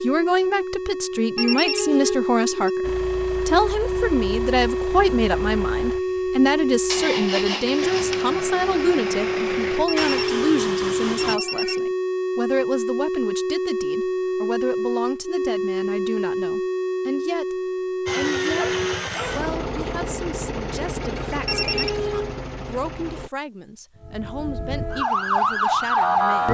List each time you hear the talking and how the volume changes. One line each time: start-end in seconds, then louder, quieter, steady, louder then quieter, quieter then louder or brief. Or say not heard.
0.0-26.5 quieter.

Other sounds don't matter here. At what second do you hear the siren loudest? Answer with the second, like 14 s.
26 s.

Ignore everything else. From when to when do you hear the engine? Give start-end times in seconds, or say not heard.
2.8-11.4, 18.1-23.3.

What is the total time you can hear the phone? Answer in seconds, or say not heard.
4 s.